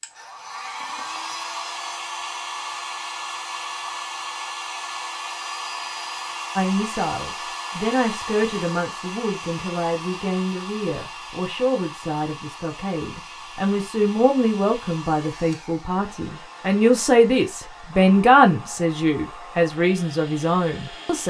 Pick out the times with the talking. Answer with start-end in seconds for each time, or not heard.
6.5-21.2.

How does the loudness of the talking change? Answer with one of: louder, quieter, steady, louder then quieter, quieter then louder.
louder.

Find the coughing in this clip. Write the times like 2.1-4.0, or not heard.
not heard.